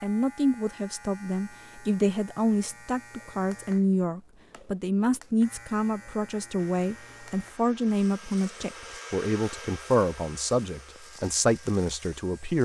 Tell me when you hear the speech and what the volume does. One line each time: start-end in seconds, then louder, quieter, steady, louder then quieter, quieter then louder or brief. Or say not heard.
0.0-12.6 steady.